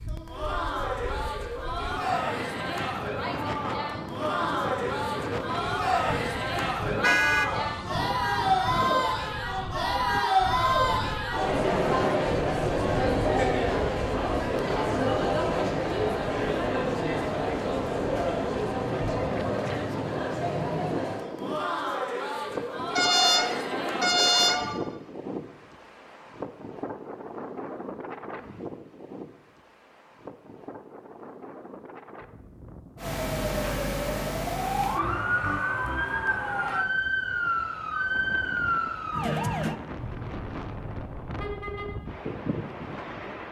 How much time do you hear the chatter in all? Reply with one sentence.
You can hear the chatter for 25 seconds altogether.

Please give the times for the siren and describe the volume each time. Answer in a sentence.
The siren can be heard from 33.0 to 39.8 s, at a steady volume.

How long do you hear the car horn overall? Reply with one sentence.
You can hear the car horn for 4 seconds altogether.